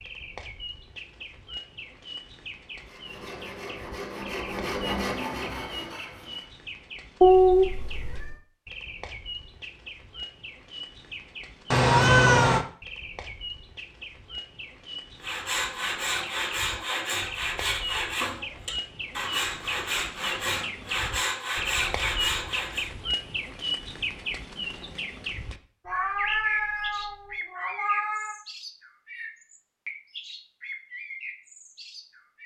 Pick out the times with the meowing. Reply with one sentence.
You can hear the meowing from 7.2 to 8.3 s, from 11.7 to 12.7 s and from 25.9 to 28.4 s.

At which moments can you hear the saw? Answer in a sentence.
You can hear the saw from 2.8 to 6.5 s and from 15.2 to 22.9 s.